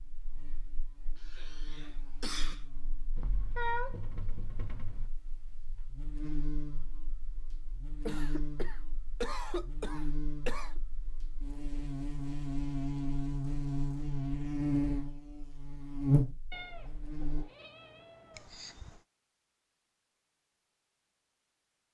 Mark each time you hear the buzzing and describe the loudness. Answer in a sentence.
The buzzing can be heard from 0.0 to 17.4 s, getting louder.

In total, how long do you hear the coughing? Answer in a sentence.
The coughing can be heard for 5 seconds in total.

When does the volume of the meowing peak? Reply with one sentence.
The volume of the meowing peaks at 4 seconds.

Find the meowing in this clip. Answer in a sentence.
You can hear the meowing from 3.1 to 5.1 s and from 16.5 to 18.4 s.